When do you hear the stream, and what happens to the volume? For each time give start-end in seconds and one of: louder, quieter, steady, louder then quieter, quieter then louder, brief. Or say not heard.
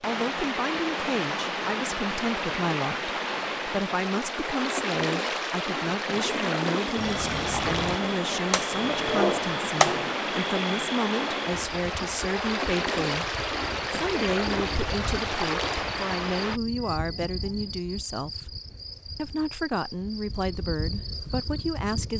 0.0-16.6 steady.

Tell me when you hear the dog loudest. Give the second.
10 s.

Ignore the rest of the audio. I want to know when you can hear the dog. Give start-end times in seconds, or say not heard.
8.0-10.2.